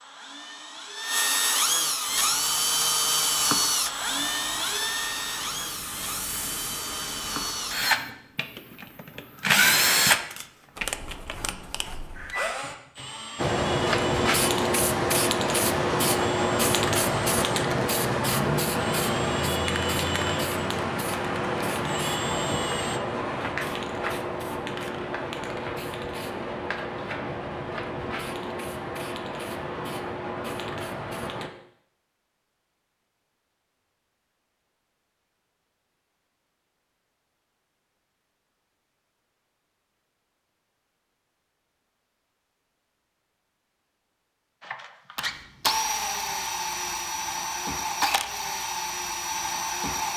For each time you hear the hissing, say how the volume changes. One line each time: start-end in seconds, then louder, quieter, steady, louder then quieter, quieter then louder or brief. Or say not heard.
2.0-10.2 louder then quieter
13.3-31.5 quieter.